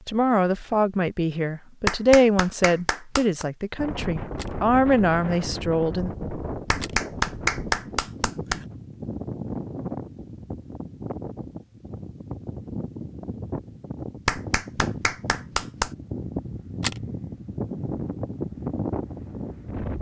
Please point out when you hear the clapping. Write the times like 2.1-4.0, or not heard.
1.9-3.5, 6.7-8.7, 14.2-15.9.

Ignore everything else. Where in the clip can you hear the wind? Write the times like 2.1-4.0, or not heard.
3.8-19.9.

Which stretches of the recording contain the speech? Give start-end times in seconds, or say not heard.
0.1-6.1.